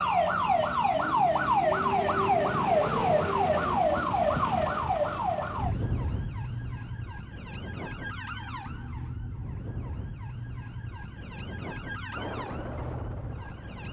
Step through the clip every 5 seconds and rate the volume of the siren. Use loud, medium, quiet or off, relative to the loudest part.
loud, medium, quiet.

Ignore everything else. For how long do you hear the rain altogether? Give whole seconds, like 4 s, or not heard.
not heard.